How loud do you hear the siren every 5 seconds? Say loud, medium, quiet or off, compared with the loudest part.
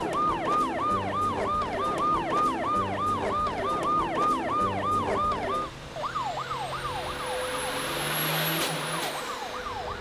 loud, medium.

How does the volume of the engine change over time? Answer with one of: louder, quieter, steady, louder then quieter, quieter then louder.
louder.